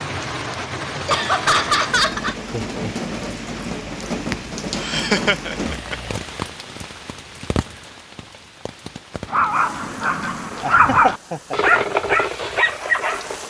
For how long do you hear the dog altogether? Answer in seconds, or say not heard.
4 s.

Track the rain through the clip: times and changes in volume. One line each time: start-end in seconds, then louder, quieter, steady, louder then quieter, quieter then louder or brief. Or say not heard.
0.0-13.4 quieter.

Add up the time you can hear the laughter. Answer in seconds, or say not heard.
4 s.